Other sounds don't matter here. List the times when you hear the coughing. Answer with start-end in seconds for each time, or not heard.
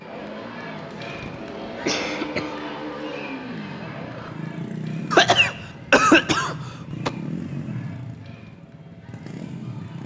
1.1-2.5, 5.1-7.1.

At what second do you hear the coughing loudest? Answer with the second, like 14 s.
6 s.